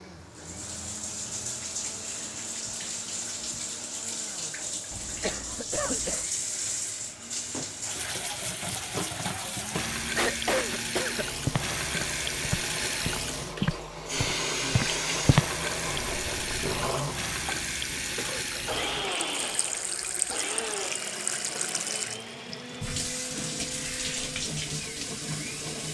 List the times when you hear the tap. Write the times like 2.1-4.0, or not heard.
0.0-25.8.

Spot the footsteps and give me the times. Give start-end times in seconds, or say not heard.
11.4-16.8.